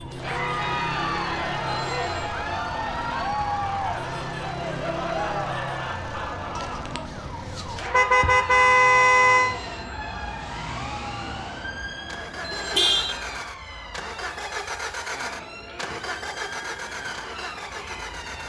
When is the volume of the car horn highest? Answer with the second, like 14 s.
9 s.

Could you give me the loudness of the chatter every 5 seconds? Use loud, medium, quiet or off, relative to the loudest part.
loud, loud, medium, quiet.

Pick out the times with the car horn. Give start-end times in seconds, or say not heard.
0.8-2.5, 7.9-9.6, 12.8-13.2.